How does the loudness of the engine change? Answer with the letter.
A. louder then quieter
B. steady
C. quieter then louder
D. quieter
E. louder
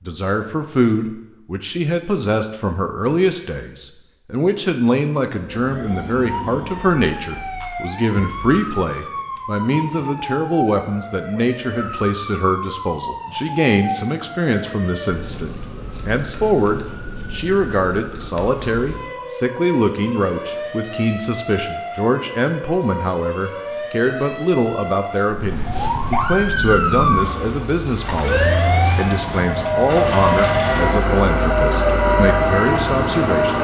E.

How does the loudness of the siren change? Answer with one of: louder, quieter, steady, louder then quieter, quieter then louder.
louder.